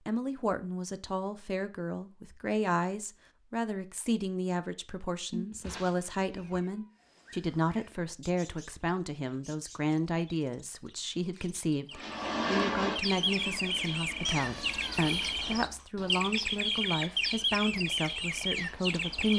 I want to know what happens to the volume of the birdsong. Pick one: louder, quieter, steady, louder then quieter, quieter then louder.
louder.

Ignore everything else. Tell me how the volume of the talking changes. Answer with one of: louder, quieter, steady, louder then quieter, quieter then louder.
steady.